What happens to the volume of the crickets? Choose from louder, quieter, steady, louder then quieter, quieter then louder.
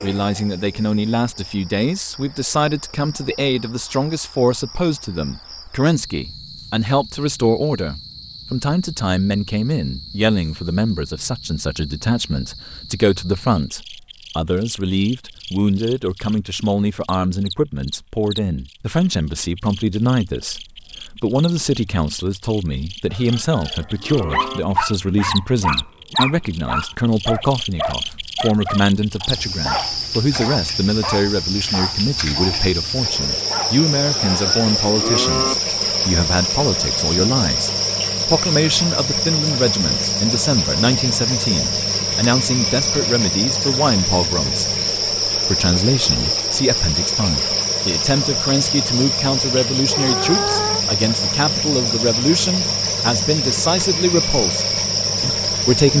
louder.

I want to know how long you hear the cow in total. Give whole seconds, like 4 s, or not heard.
3 s.